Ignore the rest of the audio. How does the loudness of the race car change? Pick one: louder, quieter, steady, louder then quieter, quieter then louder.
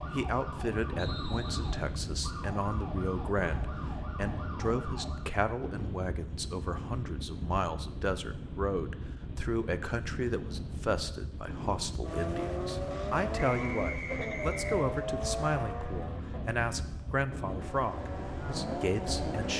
quieter then louder.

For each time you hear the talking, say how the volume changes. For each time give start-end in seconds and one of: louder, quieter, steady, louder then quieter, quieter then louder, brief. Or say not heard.
0.1-19.5 steady.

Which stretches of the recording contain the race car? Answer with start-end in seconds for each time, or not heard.
12.0-19.5.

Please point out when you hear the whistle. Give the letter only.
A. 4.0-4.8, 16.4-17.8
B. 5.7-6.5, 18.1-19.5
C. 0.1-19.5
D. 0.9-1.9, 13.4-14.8
D.